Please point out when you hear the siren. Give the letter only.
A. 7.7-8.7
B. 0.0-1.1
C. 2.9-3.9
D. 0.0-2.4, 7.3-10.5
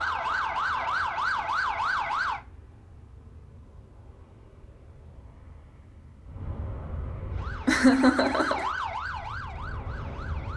D.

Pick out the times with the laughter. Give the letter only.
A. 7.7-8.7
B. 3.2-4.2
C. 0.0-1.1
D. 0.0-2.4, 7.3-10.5
A.